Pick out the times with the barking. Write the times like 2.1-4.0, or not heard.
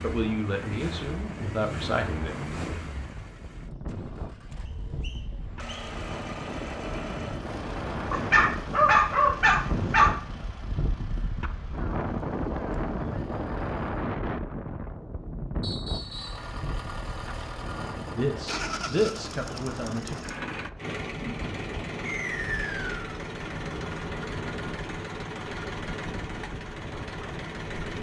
8.1-10.1.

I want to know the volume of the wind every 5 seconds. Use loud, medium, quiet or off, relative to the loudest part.
medium, loud, loud, medium, medium, medium.